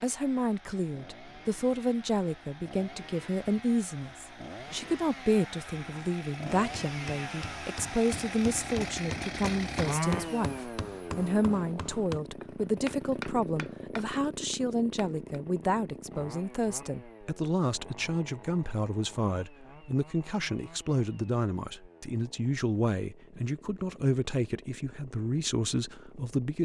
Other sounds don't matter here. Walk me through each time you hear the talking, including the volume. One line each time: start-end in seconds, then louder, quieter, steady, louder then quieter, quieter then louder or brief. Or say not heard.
0.0-26.6 steady.